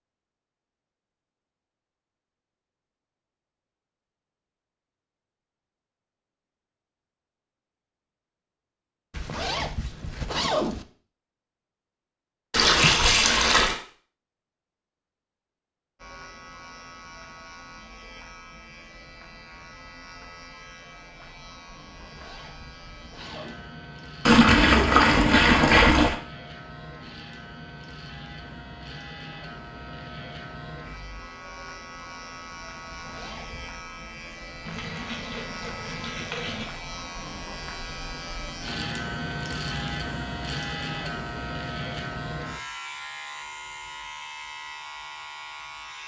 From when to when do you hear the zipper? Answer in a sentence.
The zipper can be heard from 9.1 to 10.8 s, from 21.9 to 23.6 s and from 32.9 to 33.7 s.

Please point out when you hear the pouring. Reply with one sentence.
You can hear the pouring from 12.5 to 13.8 s, from 24.2 to 26.1 s and from 34.6 to 36.6 s.